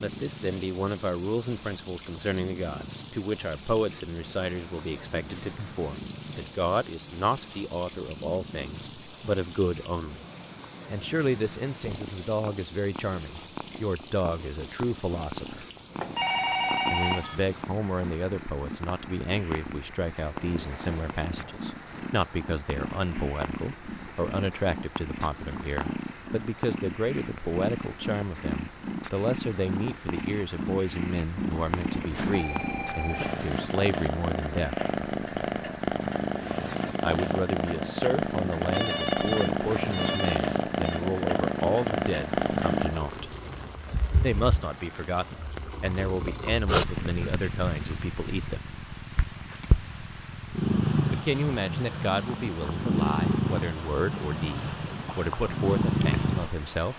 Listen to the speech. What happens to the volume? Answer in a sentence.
The volume of the speech stays about the same.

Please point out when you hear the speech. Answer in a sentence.
The speech can be heard from 0.0 to 10.2 s, from 10.9 to 15.7 s, from 16.9 to 34.8 s, from 37.0 to 43.4 s, from 44.2 to 48.6 s and from 51.1 to 56.9 s.